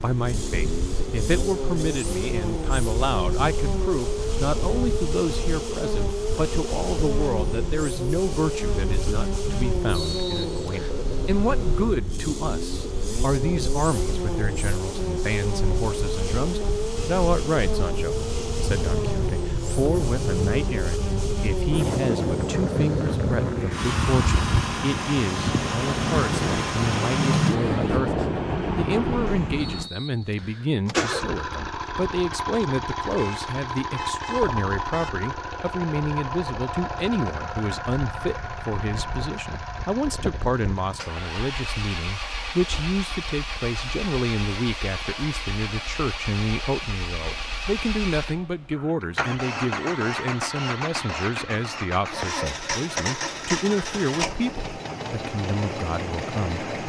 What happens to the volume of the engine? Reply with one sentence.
The volume of the engine stays about the same.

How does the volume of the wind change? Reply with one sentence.
The volume of the wind goes up.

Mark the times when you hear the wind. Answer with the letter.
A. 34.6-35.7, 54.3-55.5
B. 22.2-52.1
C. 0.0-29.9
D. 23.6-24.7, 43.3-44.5
C.